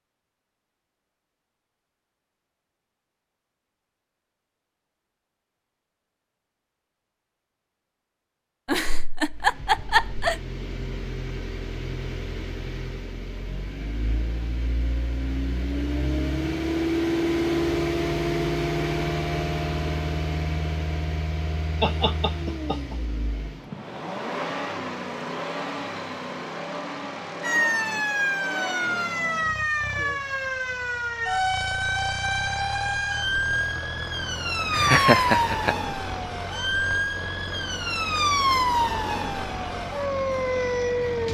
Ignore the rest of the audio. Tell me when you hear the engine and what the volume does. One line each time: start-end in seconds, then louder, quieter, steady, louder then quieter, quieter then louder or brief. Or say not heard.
9.3-41.3 louder then quieter.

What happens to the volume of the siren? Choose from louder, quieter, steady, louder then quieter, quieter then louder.
steady.